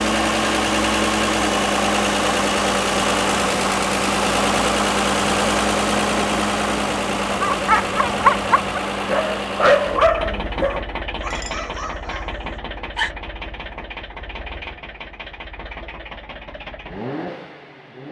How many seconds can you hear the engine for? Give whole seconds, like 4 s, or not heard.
18 s.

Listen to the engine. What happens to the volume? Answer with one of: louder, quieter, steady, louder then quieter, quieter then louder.
quieter.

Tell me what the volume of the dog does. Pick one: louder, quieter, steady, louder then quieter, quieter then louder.
quieter.